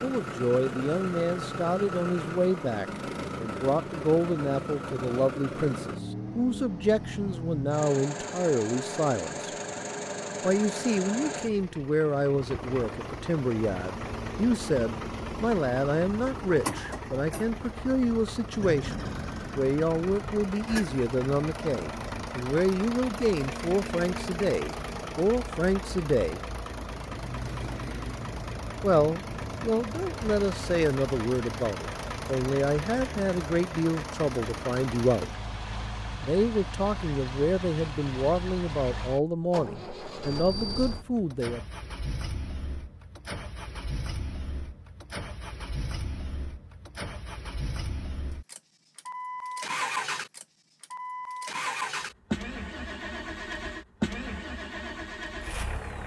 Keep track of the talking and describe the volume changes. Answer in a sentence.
The loudness of the talking stays about the same.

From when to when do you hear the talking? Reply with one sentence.
You can hear the talking from 0.0 to 9.5 s, from 10.4 to 26.4 s, from 28.8 to 35.4 s and from 36.2 to 41.6 s.